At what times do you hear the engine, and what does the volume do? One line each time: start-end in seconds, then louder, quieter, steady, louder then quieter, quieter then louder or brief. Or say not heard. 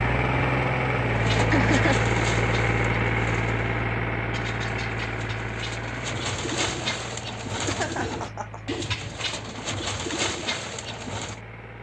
0.0-11.7 quieter.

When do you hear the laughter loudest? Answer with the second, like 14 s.
2 s.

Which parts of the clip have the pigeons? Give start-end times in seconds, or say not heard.
1.1-11.4.